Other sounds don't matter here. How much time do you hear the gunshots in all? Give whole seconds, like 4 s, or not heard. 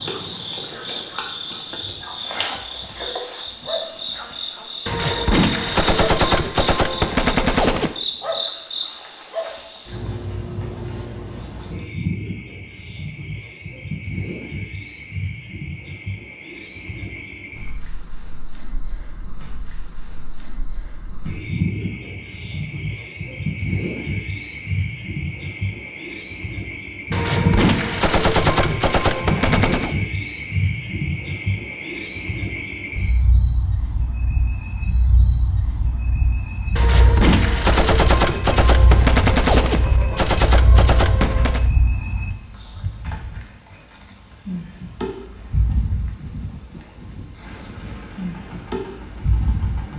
11 s.